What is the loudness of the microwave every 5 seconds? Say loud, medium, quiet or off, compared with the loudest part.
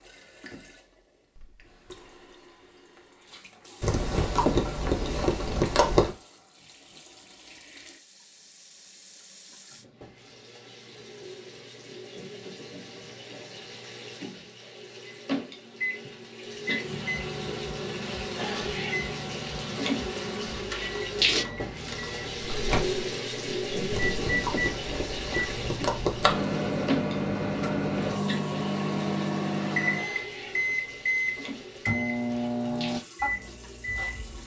off, off, off, medium, medium, loud, loud.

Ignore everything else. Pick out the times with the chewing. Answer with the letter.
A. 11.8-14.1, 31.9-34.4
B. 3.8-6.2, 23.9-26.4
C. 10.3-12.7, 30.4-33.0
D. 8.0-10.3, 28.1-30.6
B.